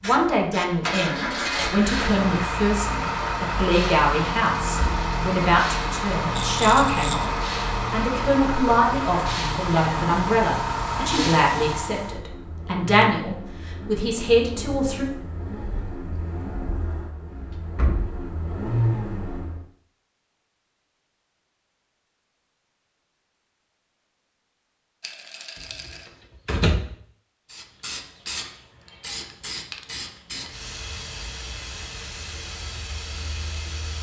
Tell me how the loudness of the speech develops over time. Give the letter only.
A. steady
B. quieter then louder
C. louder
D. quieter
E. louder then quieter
A.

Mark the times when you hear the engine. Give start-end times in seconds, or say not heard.
0.1-19.6.